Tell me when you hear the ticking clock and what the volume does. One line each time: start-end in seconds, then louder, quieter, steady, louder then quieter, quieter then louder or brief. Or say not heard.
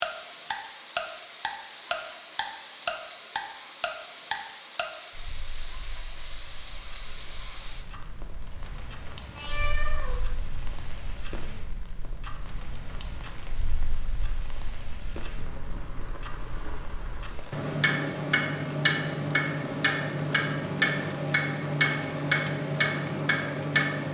0.0-24.0 quieter then louder.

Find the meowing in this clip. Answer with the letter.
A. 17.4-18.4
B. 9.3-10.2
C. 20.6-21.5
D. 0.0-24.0
B.